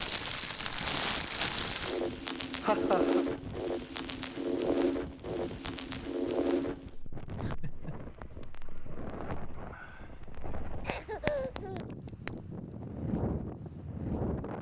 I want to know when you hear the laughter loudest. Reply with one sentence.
The volume of the laughter peaks at 3 seconds.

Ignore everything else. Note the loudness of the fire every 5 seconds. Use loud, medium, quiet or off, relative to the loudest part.
loud, medium, medium.